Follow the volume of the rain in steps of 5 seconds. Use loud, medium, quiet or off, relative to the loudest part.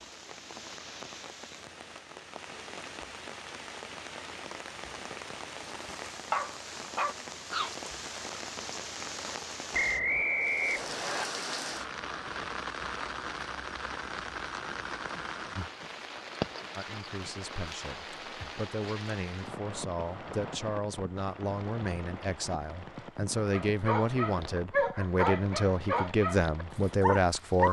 medium, loud, loud, loud, medium, medium.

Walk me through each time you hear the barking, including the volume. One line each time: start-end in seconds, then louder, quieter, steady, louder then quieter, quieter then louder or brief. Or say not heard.
5.8-7.7 brief
23.5-27.6 steady.